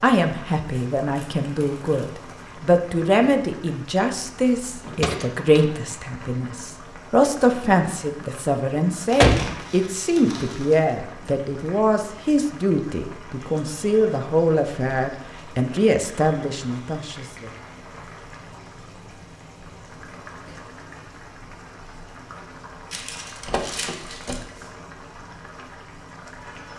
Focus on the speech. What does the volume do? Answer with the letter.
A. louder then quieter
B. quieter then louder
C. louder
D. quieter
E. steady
E.